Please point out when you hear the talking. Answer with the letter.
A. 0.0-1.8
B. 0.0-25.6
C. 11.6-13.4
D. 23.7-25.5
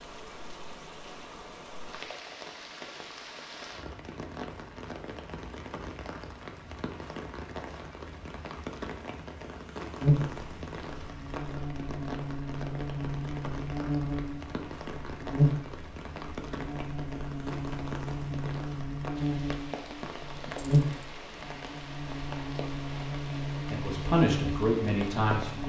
D.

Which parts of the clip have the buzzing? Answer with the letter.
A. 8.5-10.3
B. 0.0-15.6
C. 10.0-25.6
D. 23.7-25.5
C.